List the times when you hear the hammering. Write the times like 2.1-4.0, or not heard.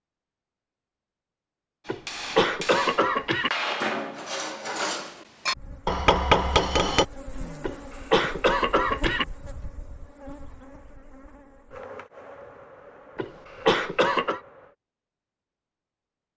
1.9-7.0.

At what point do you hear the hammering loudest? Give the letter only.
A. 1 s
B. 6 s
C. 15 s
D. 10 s
B.